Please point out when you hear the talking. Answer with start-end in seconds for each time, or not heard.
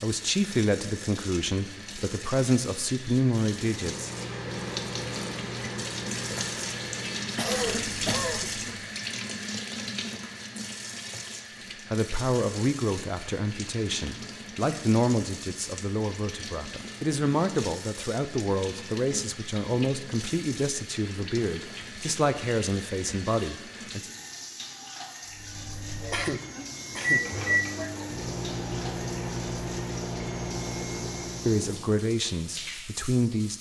0.0-4.1, 11.9-24.1, 31.4-33.5.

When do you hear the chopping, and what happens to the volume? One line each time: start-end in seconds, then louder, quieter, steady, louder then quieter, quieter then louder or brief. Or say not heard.
not heard.